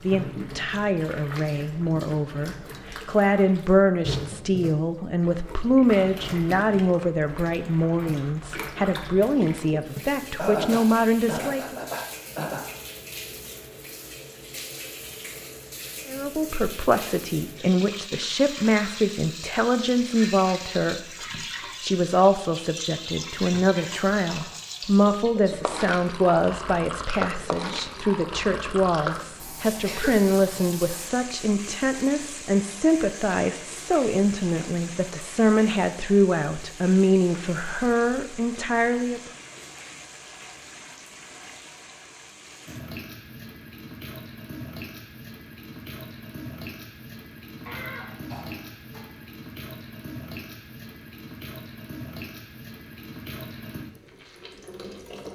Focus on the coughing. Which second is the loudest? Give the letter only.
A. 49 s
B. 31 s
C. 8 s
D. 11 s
D.